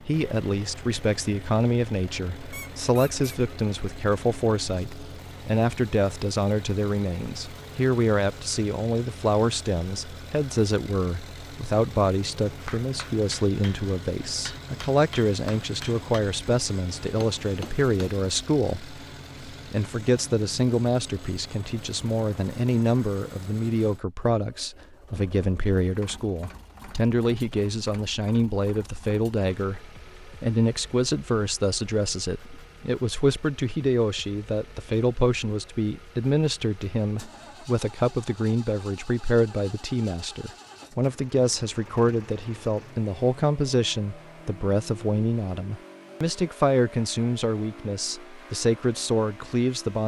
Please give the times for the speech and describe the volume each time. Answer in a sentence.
You can hear the speech from 0.1 to 50.0 s, at a steady volume.